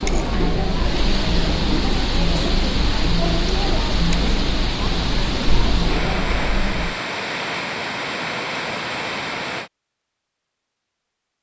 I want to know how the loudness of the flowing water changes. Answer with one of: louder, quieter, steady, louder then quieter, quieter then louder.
steady.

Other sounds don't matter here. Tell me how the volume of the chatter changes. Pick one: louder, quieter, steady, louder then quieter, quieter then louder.
steady.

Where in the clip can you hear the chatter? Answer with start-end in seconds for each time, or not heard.
0.0-7.0.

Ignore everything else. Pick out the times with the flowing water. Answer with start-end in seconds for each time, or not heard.
0.0-9.7.